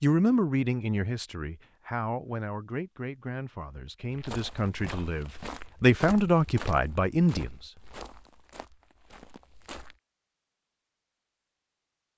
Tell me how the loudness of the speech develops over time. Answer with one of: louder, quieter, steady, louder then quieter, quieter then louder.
quieter then louder.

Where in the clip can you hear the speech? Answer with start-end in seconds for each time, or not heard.
0.0-7.7.